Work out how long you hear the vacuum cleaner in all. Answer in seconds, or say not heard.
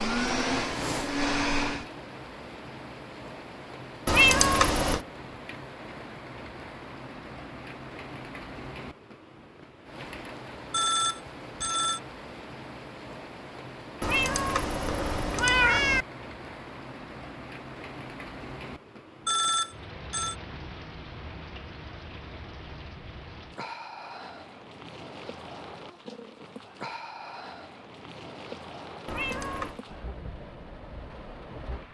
2 s.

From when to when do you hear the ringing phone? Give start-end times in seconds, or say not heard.
10.7-12.0, 19.2-20.4.